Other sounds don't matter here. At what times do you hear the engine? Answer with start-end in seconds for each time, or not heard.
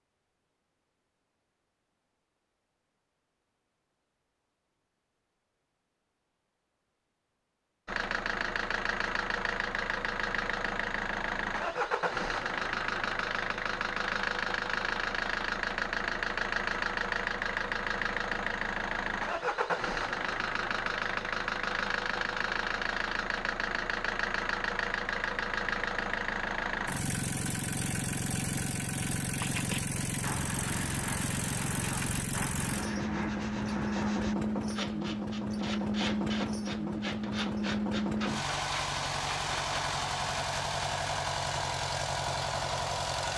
7.8-43.3.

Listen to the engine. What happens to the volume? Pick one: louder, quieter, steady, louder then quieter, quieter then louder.
steady.